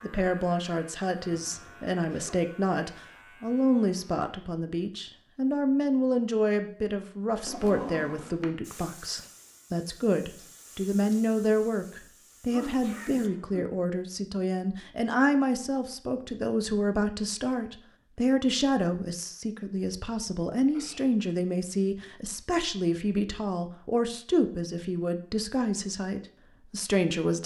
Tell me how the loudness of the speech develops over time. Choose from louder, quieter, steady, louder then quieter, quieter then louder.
steady.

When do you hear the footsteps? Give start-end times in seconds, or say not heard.
not heard.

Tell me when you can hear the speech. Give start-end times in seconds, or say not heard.
0.0-27.4.